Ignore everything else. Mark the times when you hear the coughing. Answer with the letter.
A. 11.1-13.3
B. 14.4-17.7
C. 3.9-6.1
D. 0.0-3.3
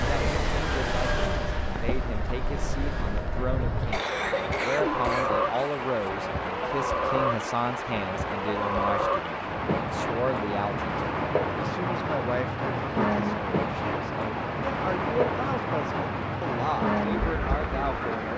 C.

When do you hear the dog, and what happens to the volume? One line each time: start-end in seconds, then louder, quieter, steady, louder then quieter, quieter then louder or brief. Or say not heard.
not heard.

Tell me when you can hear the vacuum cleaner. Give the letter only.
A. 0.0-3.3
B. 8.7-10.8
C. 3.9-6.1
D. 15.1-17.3
A.